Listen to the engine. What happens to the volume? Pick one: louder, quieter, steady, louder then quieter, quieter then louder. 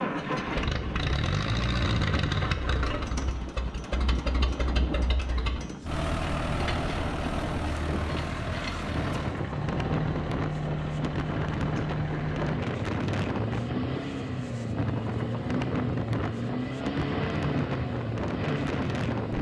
steady.